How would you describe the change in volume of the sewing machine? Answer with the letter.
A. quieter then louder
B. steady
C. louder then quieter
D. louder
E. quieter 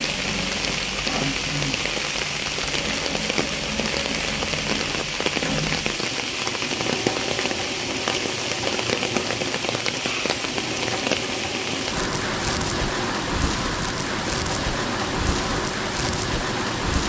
B.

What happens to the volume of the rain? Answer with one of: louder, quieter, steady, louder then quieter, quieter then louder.
steady.